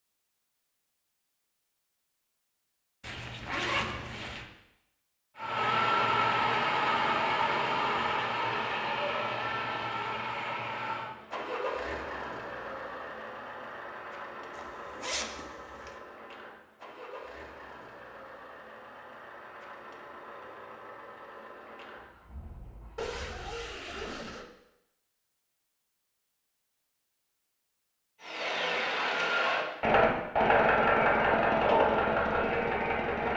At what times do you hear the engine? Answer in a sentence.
The engine can be heard from 5.3 to 23.8 s and from 28.2 to 33.3 s.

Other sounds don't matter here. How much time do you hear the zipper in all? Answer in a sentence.
The zipper can be heard for 4 seconds in total.